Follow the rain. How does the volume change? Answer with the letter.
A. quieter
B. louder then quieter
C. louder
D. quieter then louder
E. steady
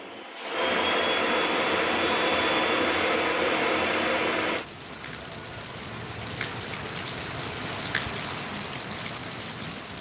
C.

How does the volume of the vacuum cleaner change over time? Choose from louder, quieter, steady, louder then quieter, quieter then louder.
steady.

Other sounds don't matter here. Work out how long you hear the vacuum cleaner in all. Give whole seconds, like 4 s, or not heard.
5 s.